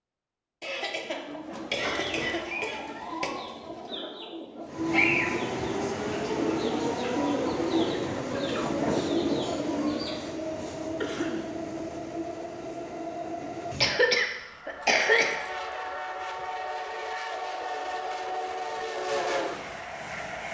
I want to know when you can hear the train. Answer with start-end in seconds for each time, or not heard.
4.7-20.4.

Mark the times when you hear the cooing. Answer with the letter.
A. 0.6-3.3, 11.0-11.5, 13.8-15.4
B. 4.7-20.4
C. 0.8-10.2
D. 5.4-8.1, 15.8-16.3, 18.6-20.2
C.